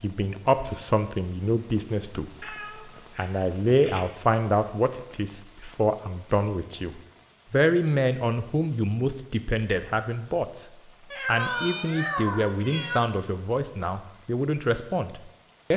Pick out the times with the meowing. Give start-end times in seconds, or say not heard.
2.4-4.0, 11.1-13.1.